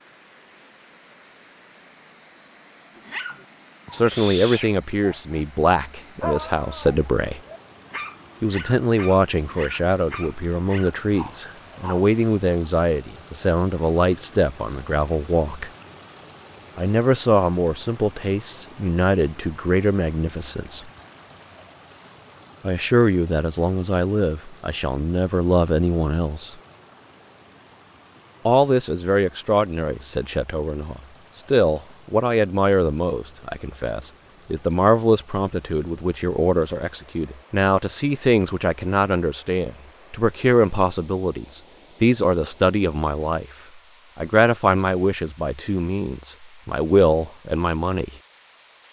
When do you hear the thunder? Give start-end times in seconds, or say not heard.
not heard.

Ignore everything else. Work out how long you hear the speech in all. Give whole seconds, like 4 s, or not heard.
38 s.